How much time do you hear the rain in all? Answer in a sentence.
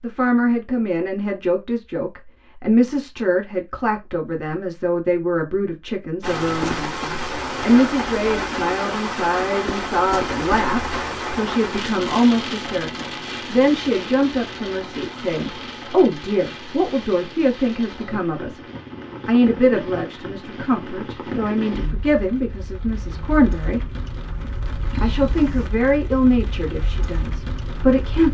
You can hear the rain for 22 seconds altogether.